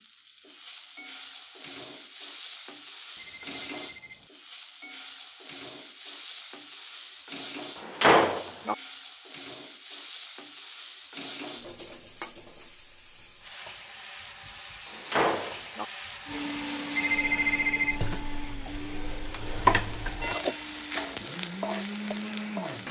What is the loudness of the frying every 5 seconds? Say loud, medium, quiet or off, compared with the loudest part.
medium, medium, medium, loud, loud.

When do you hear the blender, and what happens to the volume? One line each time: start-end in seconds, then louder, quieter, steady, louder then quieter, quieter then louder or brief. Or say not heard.
16.2-22.8 quieter then louder.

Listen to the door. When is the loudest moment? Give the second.
8 s.